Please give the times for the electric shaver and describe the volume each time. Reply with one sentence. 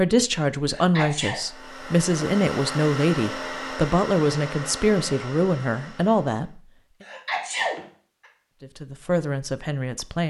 You can't hear the electric shaver here.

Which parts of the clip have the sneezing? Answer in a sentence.
You can hear the sneezing from 0.7 to 1.4 s and from 7.0 to 8.2 s.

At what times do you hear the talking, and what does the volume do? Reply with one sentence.
You can hear the talking from 0.0 to 6.6 s, at a steady volume; and briefly from 8.6 to 10.2 s.